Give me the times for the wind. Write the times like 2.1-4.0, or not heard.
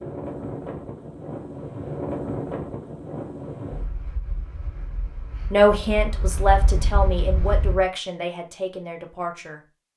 0.0-7.8.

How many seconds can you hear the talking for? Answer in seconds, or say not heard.
4 s.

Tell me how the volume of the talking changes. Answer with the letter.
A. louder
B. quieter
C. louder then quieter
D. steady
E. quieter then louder
B.